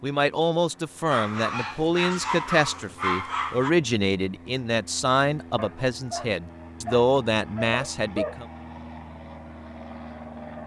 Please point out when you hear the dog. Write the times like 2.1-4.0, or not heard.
1.1-3.8, 5.5-8.3.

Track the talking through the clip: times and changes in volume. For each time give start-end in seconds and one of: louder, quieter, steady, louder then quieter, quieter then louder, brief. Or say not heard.
0.0-8.4 steady.